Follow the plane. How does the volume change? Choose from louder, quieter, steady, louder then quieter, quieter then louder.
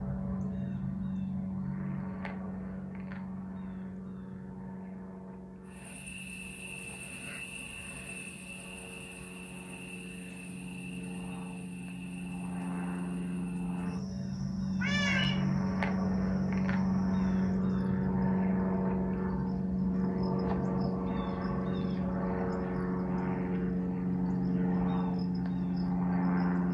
quieter then louder.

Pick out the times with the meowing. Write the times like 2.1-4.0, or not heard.
14.8-15.4.